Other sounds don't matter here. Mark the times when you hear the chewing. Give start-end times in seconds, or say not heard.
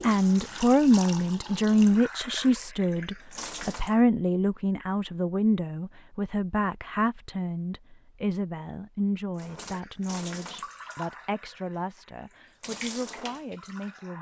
not heard.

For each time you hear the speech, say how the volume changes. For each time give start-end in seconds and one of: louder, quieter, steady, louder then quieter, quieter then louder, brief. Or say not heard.
0.0-14.1 quieter.